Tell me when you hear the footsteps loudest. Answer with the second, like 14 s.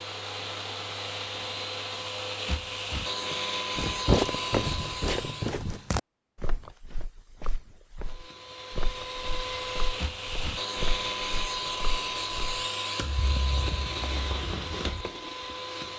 4 s.